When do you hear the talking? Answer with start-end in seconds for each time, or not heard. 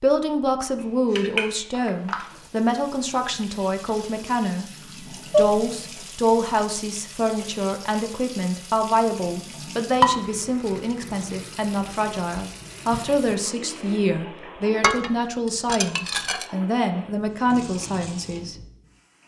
0.0-4.7, 5.3-18.6.